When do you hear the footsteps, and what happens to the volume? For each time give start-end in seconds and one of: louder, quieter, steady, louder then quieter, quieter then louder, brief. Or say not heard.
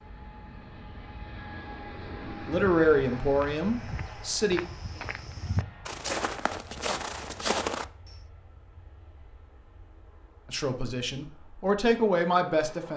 2.5-8.2 louder.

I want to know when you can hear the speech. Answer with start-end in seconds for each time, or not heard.
2.5-4.6, 10.4-12.9.